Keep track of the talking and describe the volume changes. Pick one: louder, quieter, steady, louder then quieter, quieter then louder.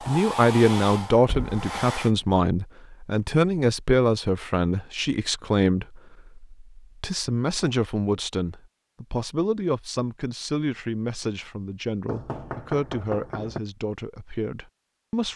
quieter.